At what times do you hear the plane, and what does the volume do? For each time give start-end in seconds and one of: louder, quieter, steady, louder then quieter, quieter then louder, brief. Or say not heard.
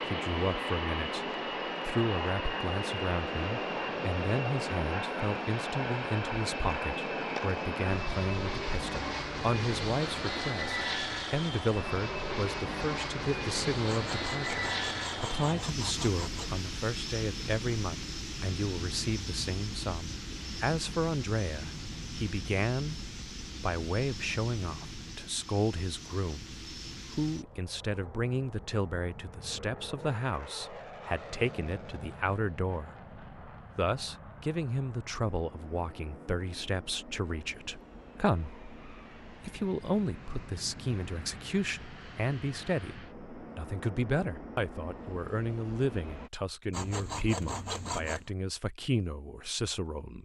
0.0-46.3 quieter.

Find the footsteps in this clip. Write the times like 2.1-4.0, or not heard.
not heard.